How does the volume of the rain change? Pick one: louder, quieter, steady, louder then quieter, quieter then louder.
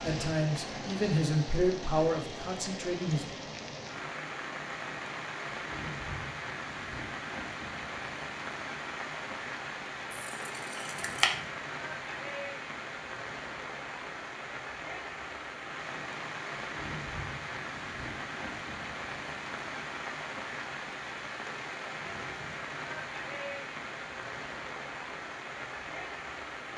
steady.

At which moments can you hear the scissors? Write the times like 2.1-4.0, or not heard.
10.1-11.3.